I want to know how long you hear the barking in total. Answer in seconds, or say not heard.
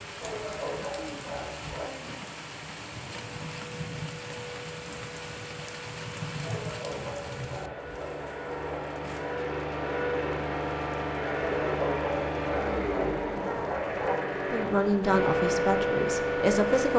7 s.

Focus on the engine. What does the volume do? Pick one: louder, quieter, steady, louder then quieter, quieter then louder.
louder.